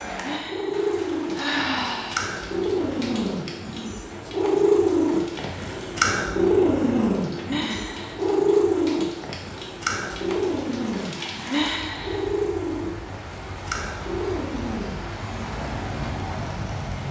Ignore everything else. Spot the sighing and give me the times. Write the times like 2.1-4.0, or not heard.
0.2-2.3, 7.5-8.2, 11.4-12.3.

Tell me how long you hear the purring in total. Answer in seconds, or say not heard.
17 s.